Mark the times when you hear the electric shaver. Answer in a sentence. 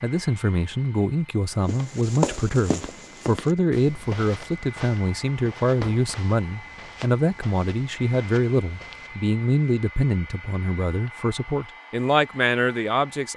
The electric shaver can't be heard in this clip.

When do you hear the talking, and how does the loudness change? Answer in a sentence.
You can hear the talking from 0.0 to 13.3 s, at a steady volume.